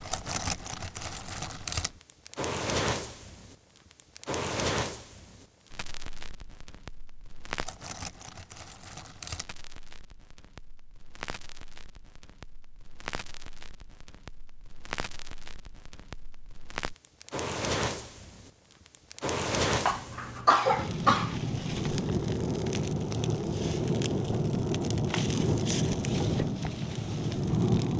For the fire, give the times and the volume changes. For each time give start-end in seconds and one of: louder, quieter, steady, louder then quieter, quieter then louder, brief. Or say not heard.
0.0-27.9 quieter then louder.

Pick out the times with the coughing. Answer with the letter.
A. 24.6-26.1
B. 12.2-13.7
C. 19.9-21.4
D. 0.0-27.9
C.